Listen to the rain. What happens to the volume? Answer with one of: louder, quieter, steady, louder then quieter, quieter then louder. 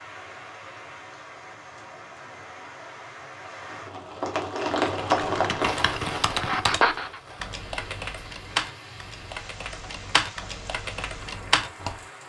louder then quieter.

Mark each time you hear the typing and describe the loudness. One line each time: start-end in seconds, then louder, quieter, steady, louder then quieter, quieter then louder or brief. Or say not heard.
5.0-11.9 steady.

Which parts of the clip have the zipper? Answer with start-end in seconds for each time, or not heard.
not heard.